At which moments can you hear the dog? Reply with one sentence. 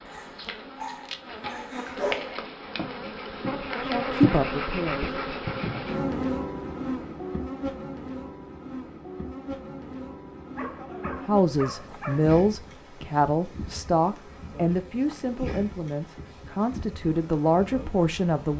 You can hear the dog from 0.1 to 2.4 s and from 10.6 to 12.3 s.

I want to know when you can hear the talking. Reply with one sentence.
You can hear the talking from 3.8 to 5.2 s and from 11.2 to 18.5 s.